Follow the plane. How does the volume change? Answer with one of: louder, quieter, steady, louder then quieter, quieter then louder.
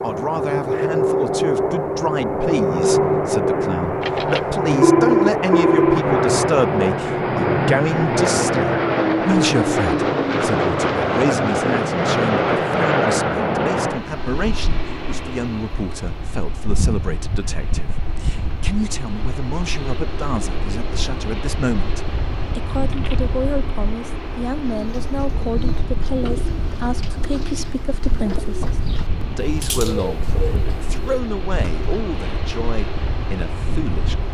quieter.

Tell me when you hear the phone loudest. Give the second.
5 s.